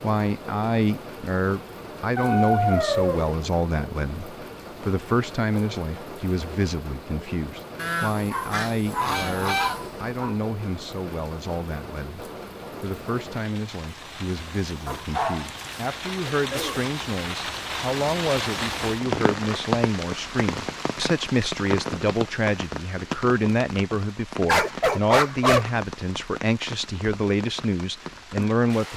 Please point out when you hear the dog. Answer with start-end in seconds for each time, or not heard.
2.1-3.3, 8.3-10.3, 14.8-16.9, 24.4-25.7.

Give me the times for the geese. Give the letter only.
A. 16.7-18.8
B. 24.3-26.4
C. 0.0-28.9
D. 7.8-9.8
D.